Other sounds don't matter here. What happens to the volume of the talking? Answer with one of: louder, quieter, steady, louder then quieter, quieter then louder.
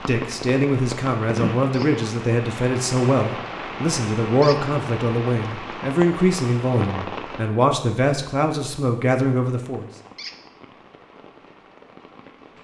steady.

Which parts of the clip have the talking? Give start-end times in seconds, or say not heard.
0.1-9.9.